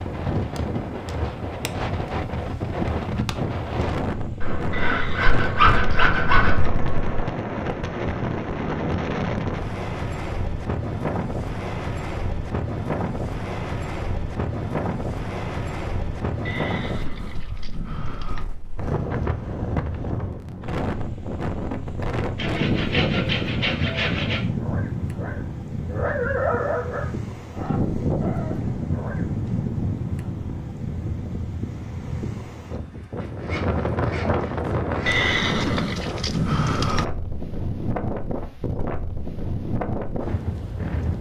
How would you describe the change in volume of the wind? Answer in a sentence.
The loudness of the wind stays about the same.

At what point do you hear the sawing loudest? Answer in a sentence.
The loudest moment of the sawing is at 6 seconds.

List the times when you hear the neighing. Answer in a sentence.
You can hear the neighing from 4.7 to 6.8 s, from 16.4 to 18.4 s and from 35.0 to 37.0 s.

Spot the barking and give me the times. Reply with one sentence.
You can hear the barking from 24.6 to 29.3 s.